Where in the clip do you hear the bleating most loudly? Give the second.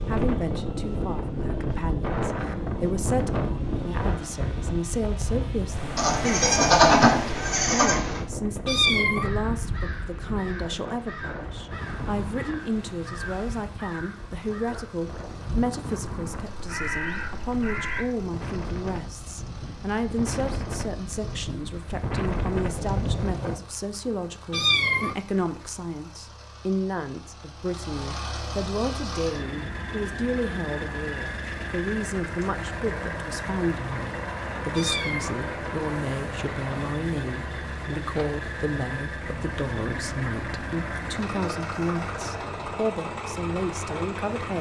7 s.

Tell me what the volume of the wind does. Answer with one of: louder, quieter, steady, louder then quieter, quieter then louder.
quieter then louder.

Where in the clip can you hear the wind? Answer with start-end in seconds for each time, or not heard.
0.0-23.6.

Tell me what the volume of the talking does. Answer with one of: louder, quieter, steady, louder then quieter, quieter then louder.
steady.